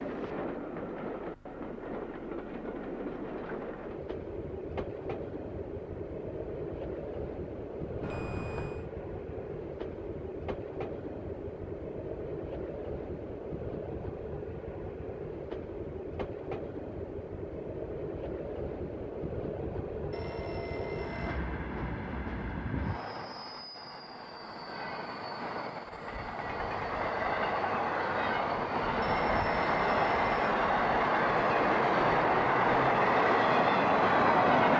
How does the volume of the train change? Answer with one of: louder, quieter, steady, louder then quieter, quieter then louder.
louder.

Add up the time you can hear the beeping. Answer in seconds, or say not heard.
4 s.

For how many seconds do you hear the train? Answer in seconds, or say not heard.
35 s.